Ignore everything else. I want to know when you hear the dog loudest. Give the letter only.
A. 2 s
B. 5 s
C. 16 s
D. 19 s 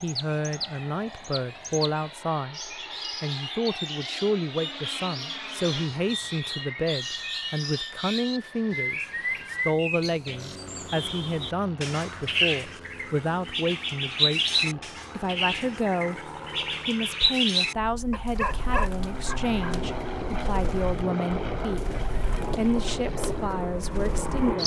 D.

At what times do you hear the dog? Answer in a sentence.
You can hear the dog from 18.1 to 19.9 s.